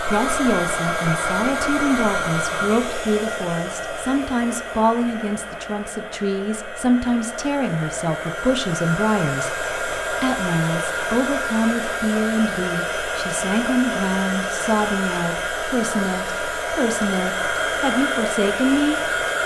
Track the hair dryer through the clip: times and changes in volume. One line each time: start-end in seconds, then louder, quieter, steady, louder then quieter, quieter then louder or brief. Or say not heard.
0.0-19.4 quieter then louder.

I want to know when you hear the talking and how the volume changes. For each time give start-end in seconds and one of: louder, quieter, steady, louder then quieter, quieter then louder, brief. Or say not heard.
0.0-19.0 steady.